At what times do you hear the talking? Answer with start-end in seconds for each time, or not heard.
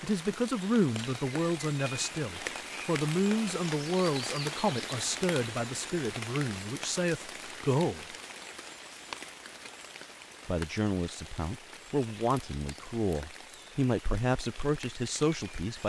0.0-8.2, 10.4-15.8.